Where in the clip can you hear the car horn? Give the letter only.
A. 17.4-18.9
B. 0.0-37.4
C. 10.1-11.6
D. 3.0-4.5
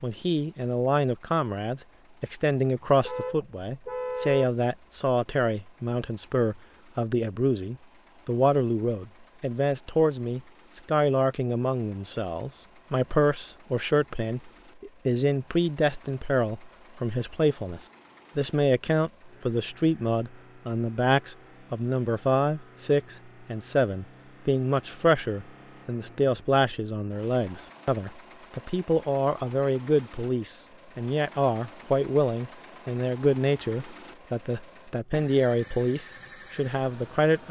D.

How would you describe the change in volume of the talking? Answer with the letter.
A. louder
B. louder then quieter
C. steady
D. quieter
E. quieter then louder
C.